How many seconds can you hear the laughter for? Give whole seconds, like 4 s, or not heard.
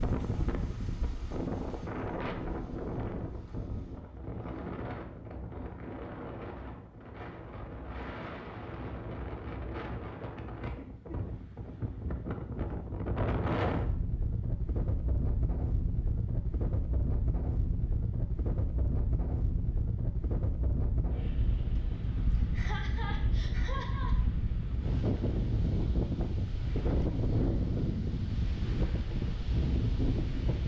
3 s.